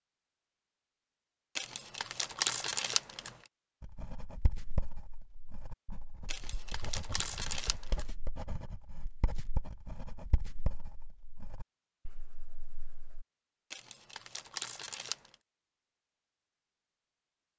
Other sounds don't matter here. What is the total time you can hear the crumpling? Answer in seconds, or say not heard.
5 s.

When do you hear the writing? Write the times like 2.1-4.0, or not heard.
3.8-13.2.